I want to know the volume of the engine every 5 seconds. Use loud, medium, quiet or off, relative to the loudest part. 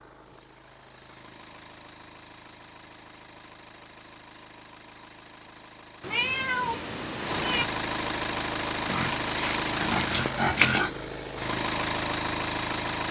quiet, loud, loud.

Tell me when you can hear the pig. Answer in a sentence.
The pig can be heard from 8.8 to 10.9 s.